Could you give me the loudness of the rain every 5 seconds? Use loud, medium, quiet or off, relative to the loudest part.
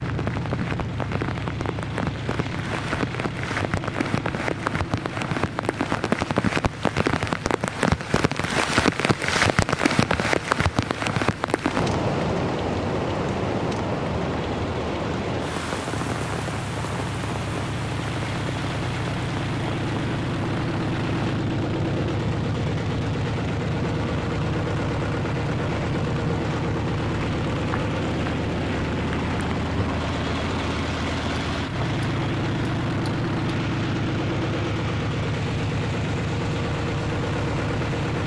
medium, loud, loud, medium, medium, quiet, quiet, quiet.